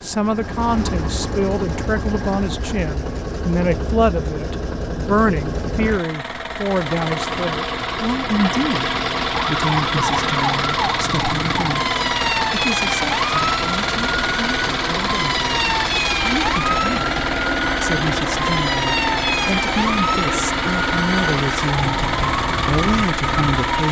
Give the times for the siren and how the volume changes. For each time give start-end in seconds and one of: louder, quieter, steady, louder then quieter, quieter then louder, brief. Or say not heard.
9.3-23.8 steady.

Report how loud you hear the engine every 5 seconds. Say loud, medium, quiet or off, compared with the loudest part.
medium, loud, loud, loud, loud.